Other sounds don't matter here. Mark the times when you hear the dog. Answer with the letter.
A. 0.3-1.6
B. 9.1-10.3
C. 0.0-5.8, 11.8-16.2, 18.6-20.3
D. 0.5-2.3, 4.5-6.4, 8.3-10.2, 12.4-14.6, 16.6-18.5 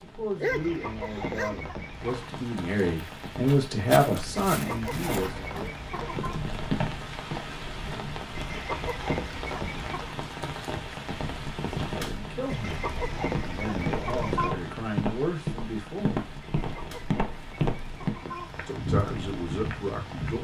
A.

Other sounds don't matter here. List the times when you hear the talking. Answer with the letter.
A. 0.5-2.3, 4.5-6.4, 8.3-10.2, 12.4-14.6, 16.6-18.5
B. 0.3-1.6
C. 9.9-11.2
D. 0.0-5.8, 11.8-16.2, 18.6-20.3
D.